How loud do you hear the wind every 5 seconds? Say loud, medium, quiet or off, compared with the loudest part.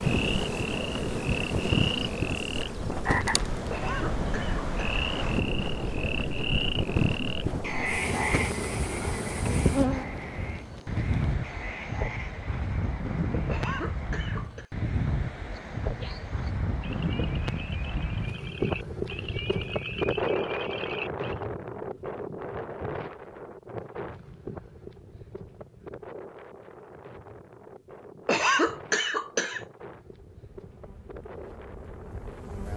loud, loud, loud, loud, loud, quiet, quiet.